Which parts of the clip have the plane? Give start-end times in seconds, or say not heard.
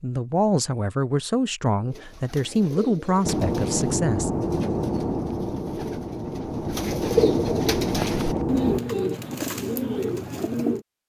3.2-8.8.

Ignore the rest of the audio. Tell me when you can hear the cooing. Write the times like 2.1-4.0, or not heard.
1.9-10.8.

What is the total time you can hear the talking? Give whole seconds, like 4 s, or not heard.
4 s.